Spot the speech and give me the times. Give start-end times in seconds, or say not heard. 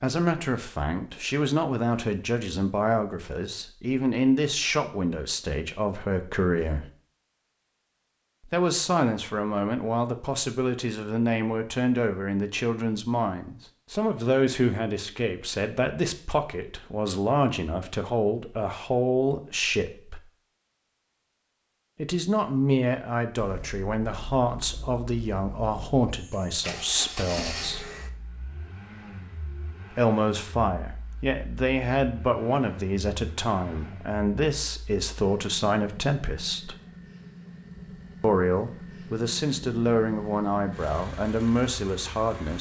0.0-6.8, 8.5-20.2, 21.9-27.9, 29.9-36.8, 38.2-42.5.